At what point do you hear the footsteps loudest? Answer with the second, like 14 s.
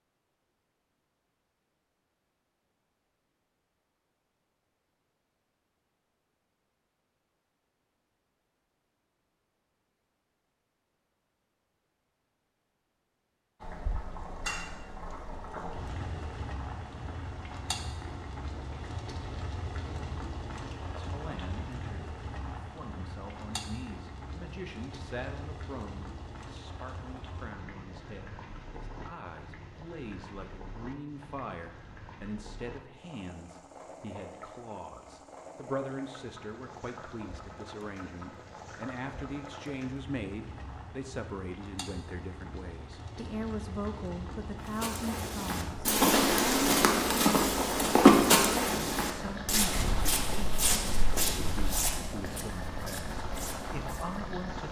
48 s.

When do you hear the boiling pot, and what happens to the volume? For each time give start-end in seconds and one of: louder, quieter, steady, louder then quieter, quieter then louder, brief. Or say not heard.
13.6-54.6 quieter then louder.